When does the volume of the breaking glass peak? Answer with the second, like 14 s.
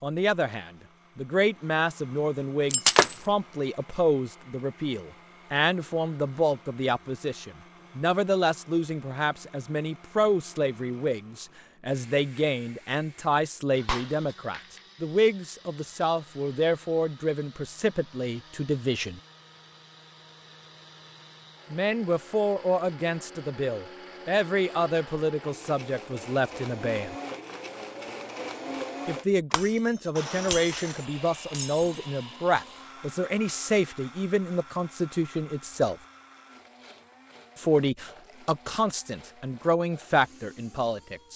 3 s.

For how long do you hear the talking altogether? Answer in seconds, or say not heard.
35 s.